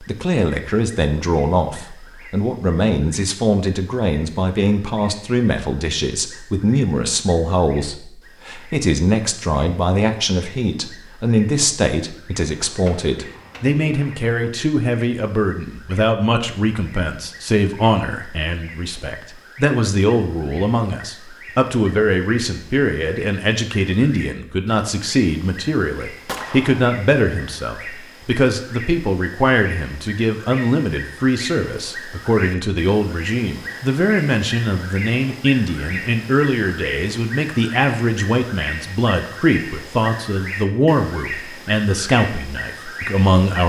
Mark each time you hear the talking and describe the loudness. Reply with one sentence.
You can hear the talking from 0.0 to 43.6 s, at a steady volume.